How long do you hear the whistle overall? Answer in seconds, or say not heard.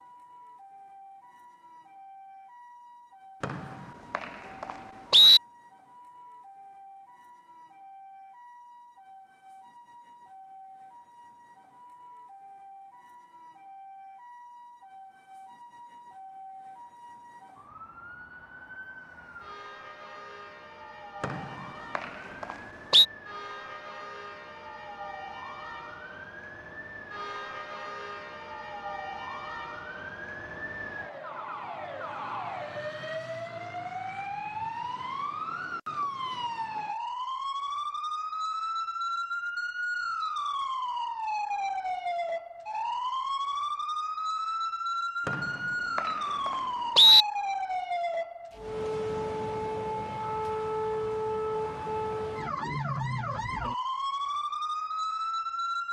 6 s.